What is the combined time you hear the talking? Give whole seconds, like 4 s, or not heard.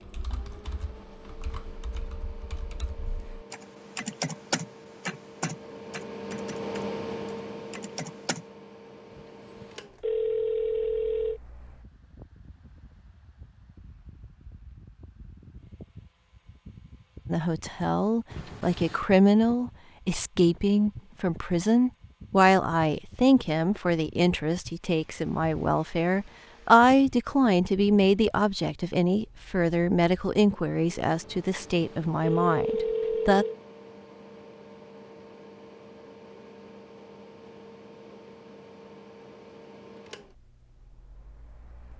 16 s.